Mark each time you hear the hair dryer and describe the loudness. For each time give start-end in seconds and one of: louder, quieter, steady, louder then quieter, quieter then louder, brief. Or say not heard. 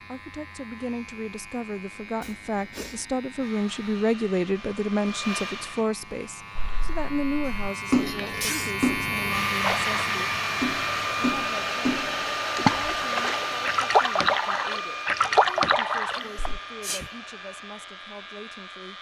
3.4-5.9 brief
9.2-18.9 quieter.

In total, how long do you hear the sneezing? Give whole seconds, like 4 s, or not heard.
3 s.